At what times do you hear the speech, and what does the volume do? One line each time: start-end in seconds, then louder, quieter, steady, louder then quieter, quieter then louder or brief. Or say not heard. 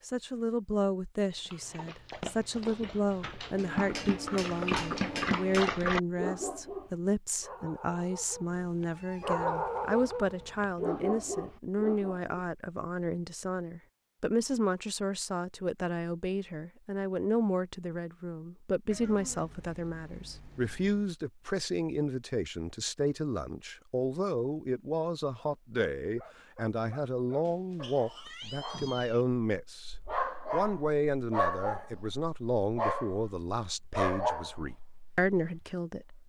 0.1-36.2 steady.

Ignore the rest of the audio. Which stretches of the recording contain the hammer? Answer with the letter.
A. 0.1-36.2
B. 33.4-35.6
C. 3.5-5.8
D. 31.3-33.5
C.